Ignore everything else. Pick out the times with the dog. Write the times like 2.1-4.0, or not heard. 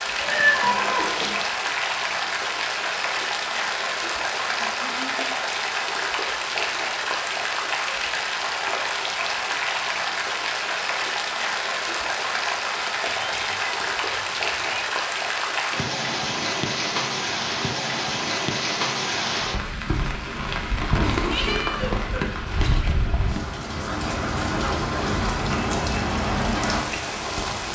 not heard.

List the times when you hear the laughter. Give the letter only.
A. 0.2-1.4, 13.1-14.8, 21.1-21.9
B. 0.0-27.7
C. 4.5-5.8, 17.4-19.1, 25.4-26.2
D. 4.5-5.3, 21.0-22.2
D.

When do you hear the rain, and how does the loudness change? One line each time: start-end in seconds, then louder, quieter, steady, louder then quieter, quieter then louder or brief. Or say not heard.
0.0-27.7 steady.